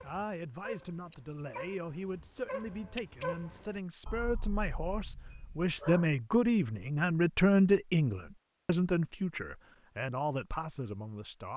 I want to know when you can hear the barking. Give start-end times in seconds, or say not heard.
0.0-6.0.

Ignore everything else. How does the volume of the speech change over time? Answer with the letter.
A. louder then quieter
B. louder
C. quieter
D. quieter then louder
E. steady
A.